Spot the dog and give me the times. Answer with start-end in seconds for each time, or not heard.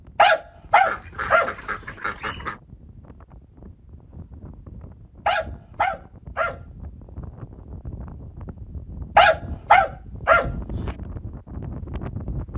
0.1-1.5, 5.2-6.6, 9.2-10.5.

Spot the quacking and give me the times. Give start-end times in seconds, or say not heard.
0.8-2.6.